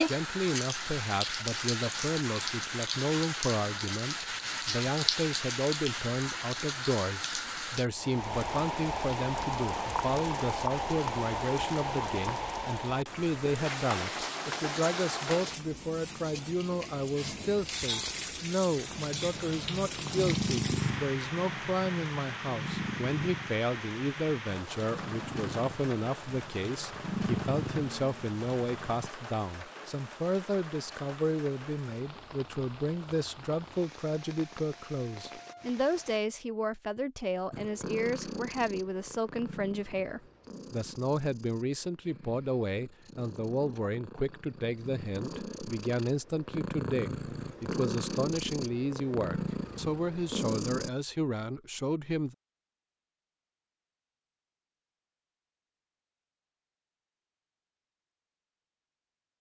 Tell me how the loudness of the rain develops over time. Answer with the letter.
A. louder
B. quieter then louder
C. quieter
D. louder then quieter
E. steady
C.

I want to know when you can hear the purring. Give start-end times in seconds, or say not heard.
18.9-29.1, 37.5-50.9.